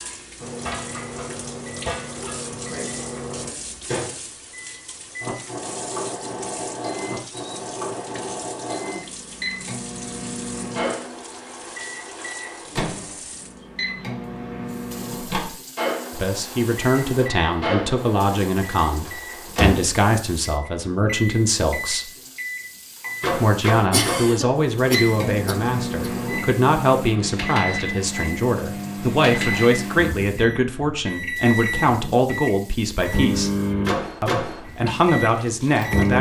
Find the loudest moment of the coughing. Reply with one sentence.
The loudest moment of the coughing is at 24 seconds.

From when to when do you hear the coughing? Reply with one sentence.
You can hear the coughing from 23.9 to 26.4 s.